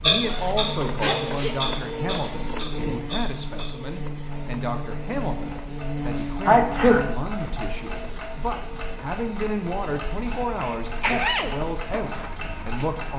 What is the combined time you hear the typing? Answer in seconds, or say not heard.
not heard.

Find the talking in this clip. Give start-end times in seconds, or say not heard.
0.0-13.1.